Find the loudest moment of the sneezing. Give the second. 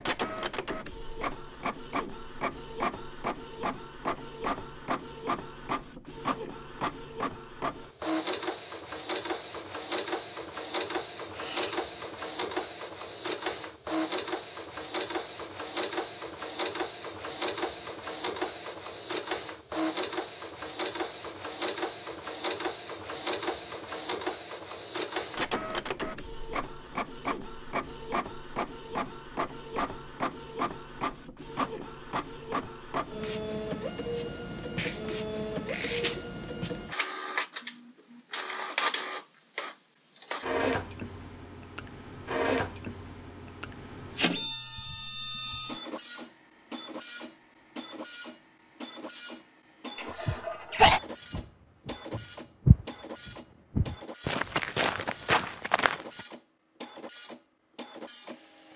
51 s.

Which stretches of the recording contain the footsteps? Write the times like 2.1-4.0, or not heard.
50.2-56.2.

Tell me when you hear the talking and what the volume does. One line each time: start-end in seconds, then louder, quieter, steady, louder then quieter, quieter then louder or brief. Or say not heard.
not heard.